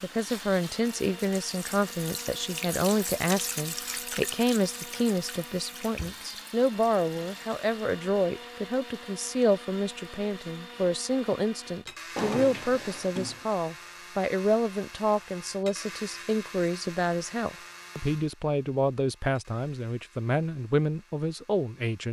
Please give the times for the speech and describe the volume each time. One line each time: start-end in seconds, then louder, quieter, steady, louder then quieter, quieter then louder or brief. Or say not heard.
0.0-22.0 steady.